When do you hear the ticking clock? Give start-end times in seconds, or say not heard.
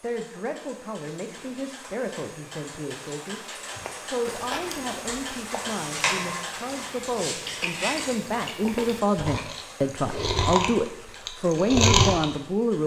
0.0-12.8.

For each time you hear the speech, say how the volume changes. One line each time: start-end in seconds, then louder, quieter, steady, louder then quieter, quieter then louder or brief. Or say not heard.
0.0-12.8 louder.